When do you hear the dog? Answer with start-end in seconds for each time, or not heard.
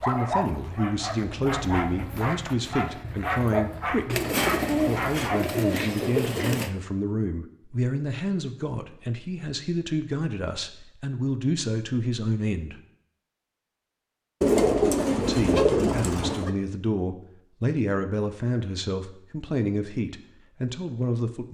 0.0-5.5.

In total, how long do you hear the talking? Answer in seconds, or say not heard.
19 s.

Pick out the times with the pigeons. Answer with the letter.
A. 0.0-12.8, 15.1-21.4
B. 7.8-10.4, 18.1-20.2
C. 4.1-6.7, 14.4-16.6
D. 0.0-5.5
C.